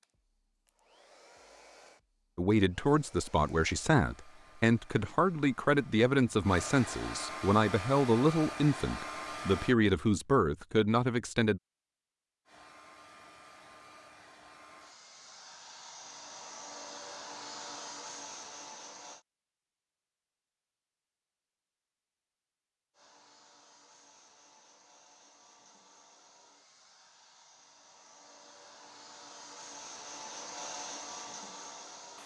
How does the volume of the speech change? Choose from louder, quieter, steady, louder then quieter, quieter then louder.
steady.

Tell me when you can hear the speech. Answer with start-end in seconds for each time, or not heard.
2.4-11.6.